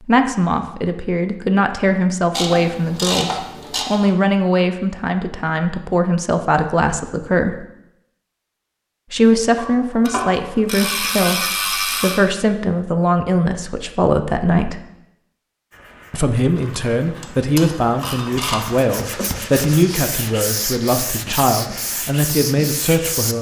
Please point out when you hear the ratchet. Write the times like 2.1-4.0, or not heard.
2.3-4.0, 9.6-12.2, 16.6-18.6.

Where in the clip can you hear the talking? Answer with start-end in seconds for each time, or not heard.
0.0-7.7, 9.1-14.8, 16.1-23.3.